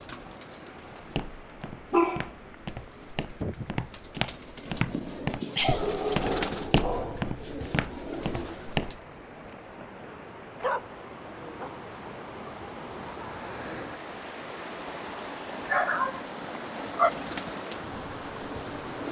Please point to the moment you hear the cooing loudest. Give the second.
6 s.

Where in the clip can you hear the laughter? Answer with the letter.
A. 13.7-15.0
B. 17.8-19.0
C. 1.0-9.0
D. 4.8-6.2
D.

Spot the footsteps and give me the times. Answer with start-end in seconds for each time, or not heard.
1.0-9.0.